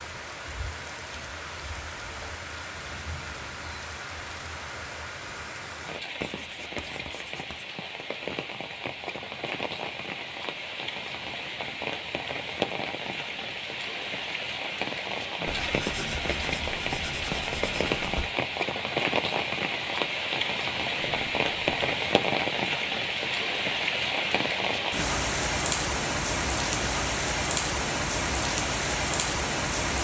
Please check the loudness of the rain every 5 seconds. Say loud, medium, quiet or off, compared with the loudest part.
medium, medium, medium, loud, loud, loud.